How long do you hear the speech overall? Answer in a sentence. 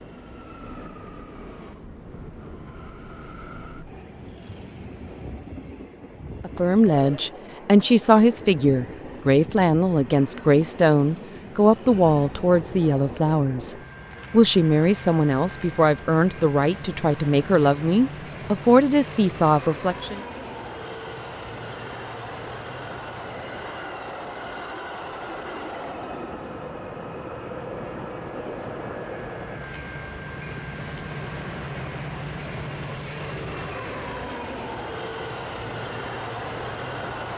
You can hear the speech for 14 seconds altogether.